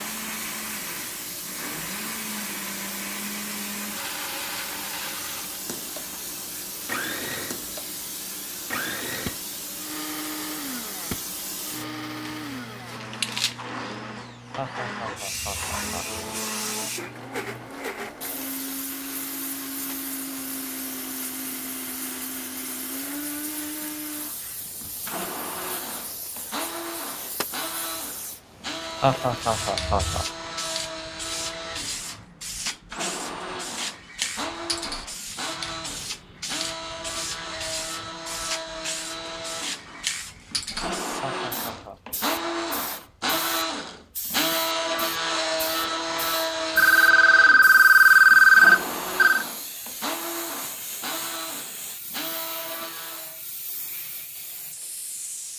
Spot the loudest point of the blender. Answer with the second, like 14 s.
45 s.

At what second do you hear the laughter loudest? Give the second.
29 s.